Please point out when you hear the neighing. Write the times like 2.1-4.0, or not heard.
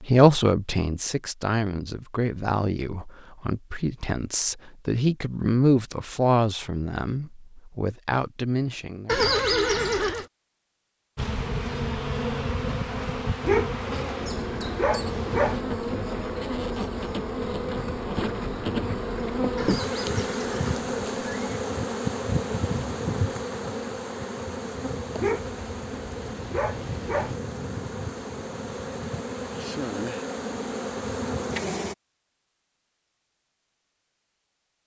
9.1-10.2, 19.6-21.5.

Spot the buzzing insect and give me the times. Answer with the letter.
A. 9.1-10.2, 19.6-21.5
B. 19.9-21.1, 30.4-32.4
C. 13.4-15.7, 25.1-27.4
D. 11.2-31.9
D.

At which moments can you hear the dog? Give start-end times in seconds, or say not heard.
13.4-15.7, 25.1-27.4.